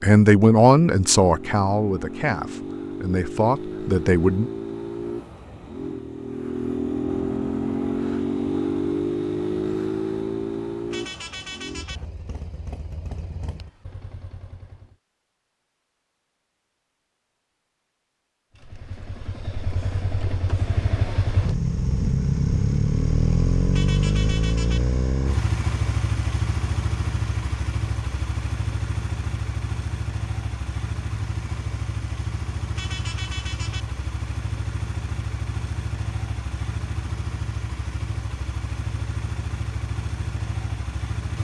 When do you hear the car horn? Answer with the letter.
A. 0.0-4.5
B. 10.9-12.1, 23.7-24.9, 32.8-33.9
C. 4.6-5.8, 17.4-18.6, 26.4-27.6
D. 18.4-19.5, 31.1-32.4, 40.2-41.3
B.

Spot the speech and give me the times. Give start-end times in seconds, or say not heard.
0.0-4.5.